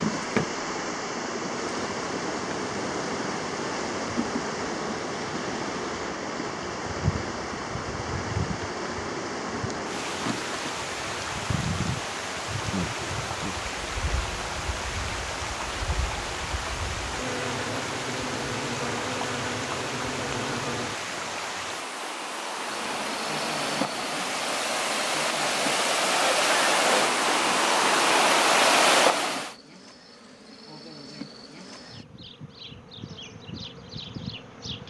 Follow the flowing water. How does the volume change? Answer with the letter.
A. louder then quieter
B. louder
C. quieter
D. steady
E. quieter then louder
B.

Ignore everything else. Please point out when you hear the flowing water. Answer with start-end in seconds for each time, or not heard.
0.0-29.6.